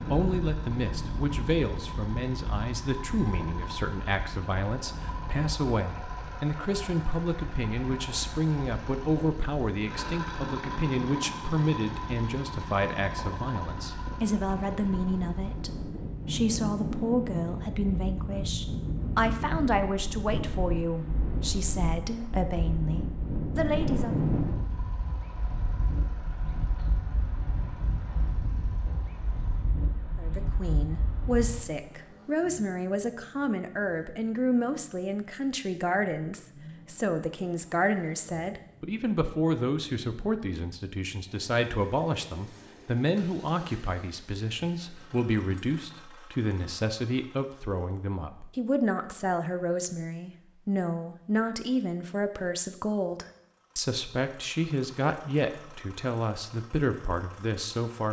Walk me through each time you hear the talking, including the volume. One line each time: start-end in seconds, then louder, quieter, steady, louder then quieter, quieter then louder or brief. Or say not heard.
0.0-24.2 steady
30.1-58.0 steady.